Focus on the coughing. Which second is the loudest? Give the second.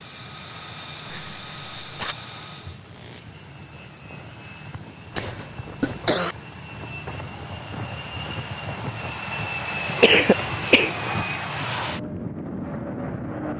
10 s.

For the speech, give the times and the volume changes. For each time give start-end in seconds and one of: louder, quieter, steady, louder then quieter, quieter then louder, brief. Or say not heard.
not heard.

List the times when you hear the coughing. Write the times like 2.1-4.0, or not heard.
1.1-2.1, 5.2-6.3, 9.8-11.4.